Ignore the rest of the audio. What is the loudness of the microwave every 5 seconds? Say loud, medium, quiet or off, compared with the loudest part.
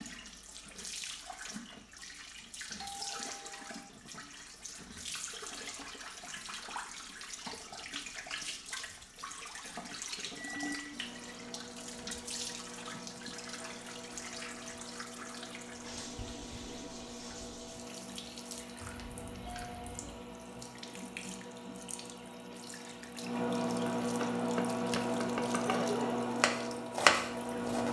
off, off, quiet, quiet, loud, loud.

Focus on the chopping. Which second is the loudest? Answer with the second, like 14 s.
27 s.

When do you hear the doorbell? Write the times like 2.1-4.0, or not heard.
2.8-3.9, 18.8-20.2.